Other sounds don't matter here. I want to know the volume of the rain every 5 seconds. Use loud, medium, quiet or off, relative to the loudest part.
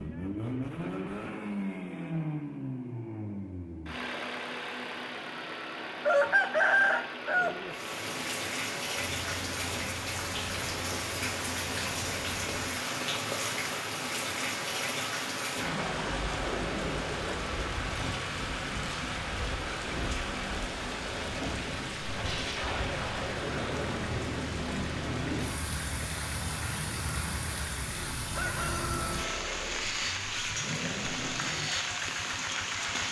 off, loud, loud, loud, loud, loud, loud.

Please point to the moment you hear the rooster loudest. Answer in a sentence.
The loudest moment of the rooster is at 7 seconds.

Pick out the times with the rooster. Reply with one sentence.
The rooster can be heard from 6.0 to 7.8 s and from 28.2 to 29.4 s.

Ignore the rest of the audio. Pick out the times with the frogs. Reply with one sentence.
The frogs can't be heard in this clip.